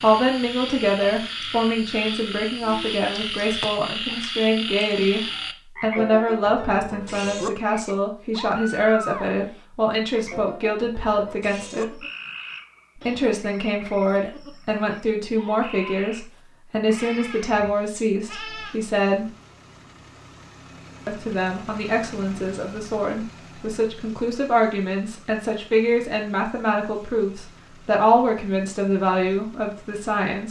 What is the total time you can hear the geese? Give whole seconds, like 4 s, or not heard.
not heard.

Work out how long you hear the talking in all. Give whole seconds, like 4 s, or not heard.
28 s.